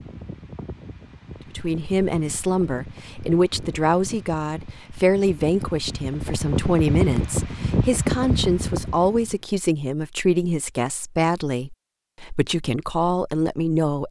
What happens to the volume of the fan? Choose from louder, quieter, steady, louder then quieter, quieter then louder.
louder.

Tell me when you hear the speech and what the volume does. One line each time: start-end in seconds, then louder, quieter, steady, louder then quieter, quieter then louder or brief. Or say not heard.
1.5-14.0 steady.